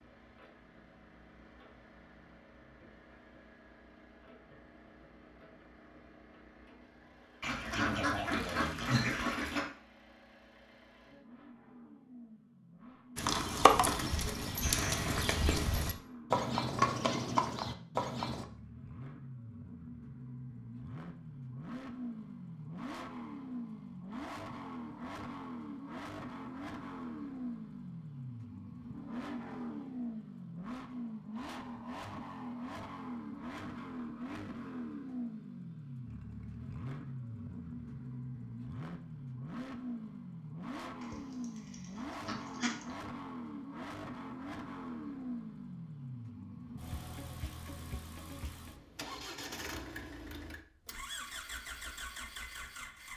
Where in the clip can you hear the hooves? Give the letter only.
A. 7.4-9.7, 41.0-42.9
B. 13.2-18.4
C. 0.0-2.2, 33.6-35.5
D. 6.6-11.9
B.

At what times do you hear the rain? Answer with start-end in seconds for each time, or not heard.
not heard.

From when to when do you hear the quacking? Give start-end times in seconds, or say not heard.
7.4-9.7, 41.0-42.9.